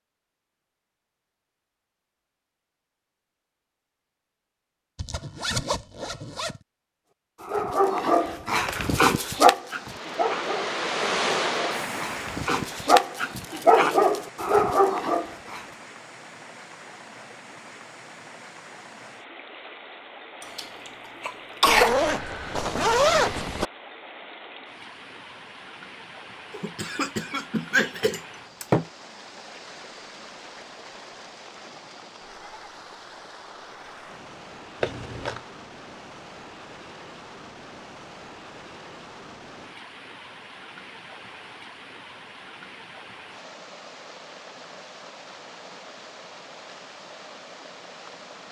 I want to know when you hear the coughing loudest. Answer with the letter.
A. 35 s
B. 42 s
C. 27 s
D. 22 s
D.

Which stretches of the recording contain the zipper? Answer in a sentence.
You can hear the zipper from 5.0 to 6.6 s, from 21.6 to 23.6 s and from 34.8 to 35.4 s.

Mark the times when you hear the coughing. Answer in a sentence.
The coughing can be heard from 20.4 to 22.0 s and from 26.5 to 28.9 s.